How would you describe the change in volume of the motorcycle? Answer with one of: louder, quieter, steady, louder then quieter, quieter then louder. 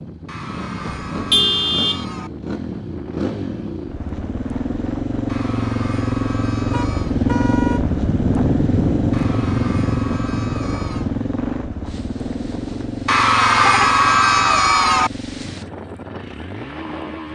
louder then quieter.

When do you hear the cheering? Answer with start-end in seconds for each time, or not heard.
0.2-2.3, 5.2-7.2, 9.1-11.1, 13.1-15.1.